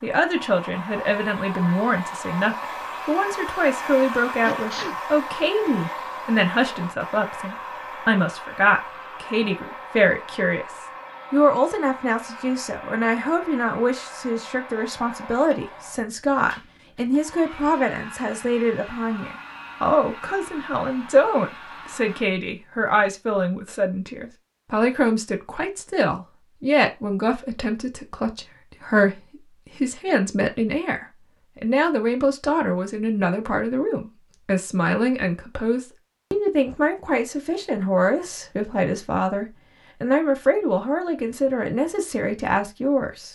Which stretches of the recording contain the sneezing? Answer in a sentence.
The sneezing can be heard from 4.2 to 5.0 s.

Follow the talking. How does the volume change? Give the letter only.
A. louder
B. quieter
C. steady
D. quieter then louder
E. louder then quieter
C.